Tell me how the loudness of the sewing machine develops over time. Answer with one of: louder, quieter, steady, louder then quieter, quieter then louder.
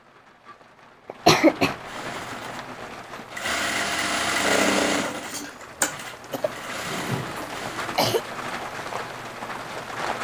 louder then quieter.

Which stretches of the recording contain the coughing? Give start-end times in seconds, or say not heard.
1.1-1.8, 6.3-8.2.